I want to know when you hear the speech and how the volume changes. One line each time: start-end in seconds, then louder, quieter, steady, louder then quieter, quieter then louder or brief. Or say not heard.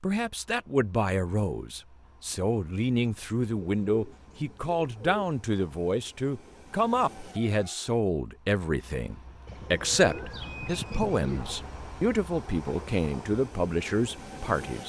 0.0-14.8 steady.